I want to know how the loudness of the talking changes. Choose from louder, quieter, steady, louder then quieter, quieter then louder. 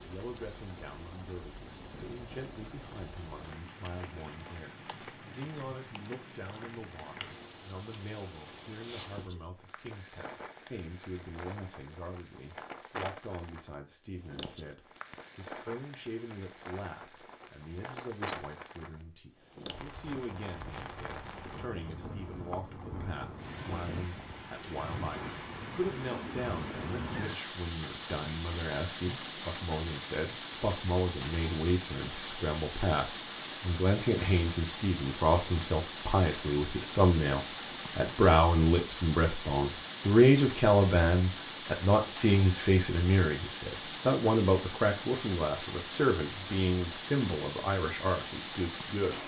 louder.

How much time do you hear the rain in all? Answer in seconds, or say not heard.
49 s.